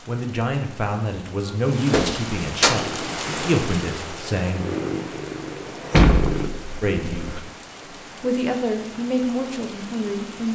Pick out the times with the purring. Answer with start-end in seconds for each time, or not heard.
2.6-6.5.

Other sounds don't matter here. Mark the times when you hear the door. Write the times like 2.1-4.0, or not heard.
1.9-2.8, 5.9-7.4.